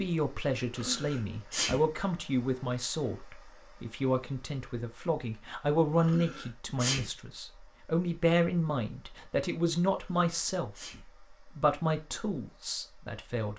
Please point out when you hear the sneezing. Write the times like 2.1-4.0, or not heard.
0.8-1.8, 6.0-7.0, 9.9-11.0.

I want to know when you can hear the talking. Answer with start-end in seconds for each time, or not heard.
0.0-10.7, 11.6-13.5.